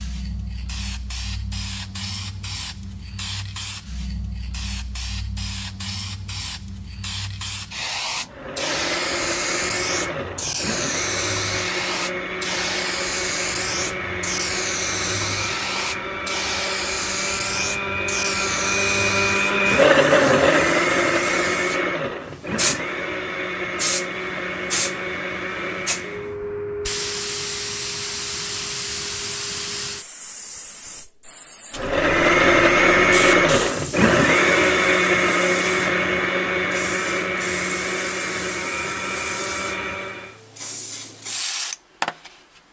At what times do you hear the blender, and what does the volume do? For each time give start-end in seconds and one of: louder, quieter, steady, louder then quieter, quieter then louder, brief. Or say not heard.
8.2-26.4 louder then quieter
31.8-40.4 quieter.